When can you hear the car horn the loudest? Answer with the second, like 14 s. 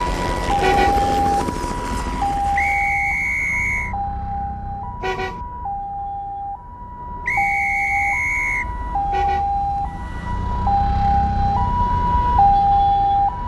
1 s.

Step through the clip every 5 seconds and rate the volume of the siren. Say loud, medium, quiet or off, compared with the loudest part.
medium, medium, loud.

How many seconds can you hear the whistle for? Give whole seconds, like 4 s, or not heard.
3 s.